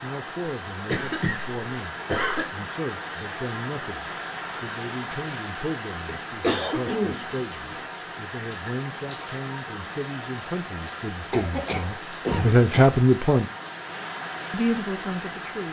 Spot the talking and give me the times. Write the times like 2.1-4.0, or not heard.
0.0-13.4, 14.5-15.6.